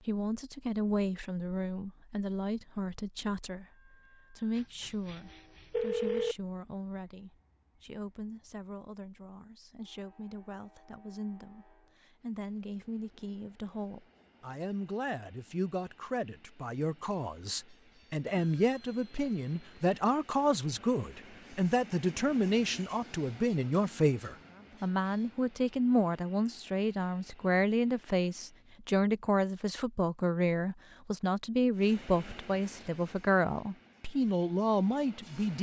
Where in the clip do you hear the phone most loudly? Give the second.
6 s.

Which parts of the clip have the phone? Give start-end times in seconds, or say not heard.
4.5-6.3, 18.2-20.0.